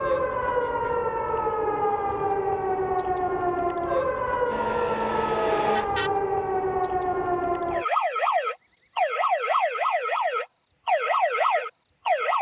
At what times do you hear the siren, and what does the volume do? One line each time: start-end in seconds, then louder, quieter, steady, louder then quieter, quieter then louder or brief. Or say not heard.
0.0-12.3 steady.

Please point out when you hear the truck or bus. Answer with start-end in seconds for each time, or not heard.
4.5-6.1.